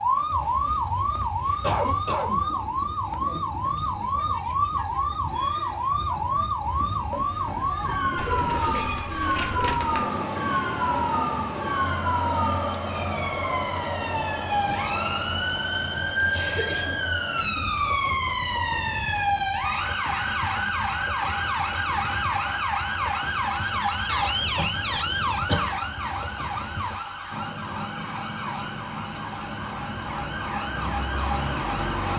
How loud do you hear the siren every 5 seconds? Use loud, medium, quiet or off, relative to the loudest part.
loud, loud, loud, loud, loud, medium, loud.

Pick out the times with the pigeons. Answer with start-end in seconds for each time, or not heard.
8.2-10.1.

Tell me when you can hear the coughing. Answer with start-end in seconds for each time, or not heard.
1.6-2.4, 16.3-17.8, 24.1-25.7.